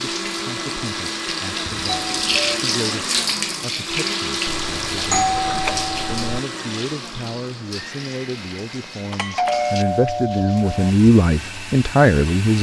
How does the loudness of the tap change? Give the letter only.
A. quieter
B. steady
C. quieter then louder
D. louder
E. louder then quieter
A.